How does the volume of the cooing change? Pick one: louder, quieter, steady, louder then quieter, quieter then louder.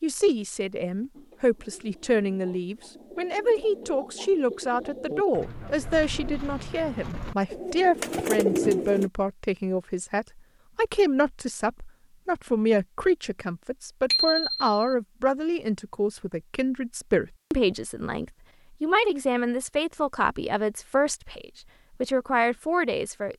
louder.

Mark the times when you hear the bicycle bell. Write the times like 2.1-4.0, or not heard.
14.1-14.9.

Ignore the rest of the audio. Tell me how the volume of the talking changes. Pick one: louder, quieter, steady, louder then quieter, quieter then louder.
steady.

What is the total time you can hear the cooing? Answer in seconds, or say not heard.
8 s.